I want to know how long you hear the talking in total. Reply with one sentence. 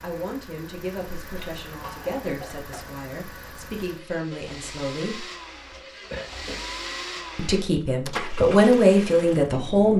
You can hear the talking for 8 seconds altogether.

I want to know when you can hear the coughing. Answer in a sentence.
You can hear the coughing from 1.4 to 2.9 s and from 5.7 to 6.7 s.